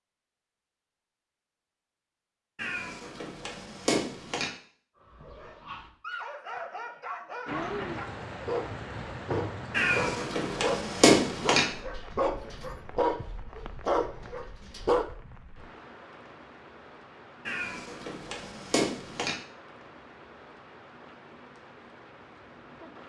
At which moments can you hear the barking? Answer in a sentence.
You can hear the barking from 5.0 to 15.1 s.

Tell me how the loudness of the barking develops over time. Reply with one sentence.
The loudness of the barking goes up.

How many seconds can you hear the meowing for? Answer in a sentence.
The meowing can be heard for 6 seconds in total.